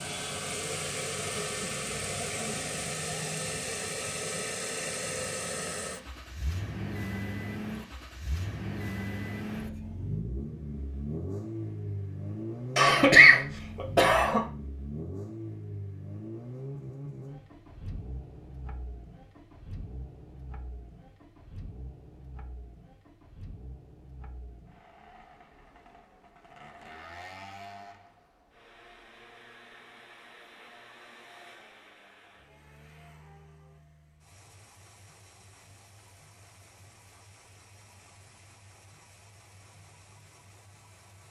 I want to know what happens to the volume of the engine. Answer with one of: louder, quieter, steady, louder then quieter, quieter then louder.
quieter.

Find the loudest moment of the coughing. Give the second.
13 s.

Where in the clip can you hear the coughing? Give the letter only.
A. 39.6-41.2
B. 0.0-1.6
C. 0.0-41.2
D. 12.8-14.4
D.